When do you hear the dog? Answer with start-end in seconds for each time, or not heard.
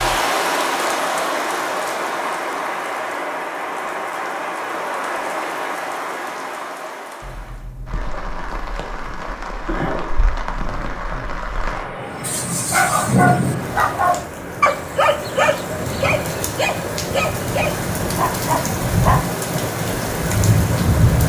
12.2-19.2.